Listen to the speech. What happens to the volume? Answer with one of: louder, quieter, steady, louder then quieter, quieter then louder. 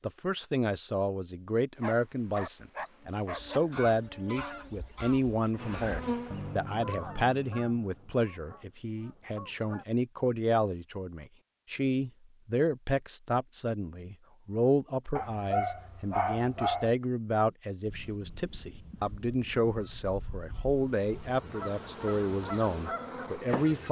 steady.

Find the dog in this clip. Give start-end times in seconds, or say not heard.
1.8-3.6, 15.2-16.9.